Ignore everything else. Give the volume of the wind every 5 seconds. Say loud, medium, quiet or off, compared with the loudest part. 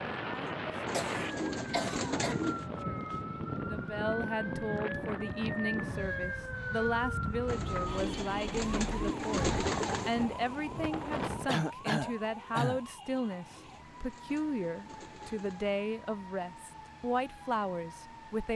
loud, loud, loud, off.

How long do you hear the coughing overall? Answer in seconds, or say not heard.
3 s.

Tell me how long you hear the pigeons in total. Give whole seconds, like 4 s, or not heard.
7 s.